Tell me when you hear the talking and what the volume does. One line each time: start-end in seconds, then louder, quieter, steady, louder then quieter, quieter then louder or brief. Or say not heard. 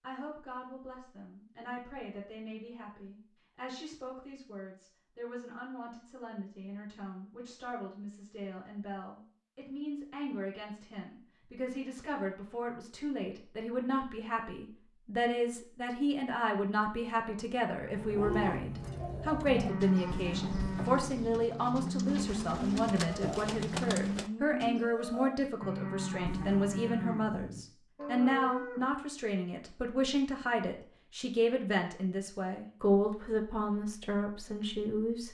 0.0-35.2 louder.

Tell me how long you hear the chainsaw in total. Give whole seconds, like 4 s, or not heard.
not heard.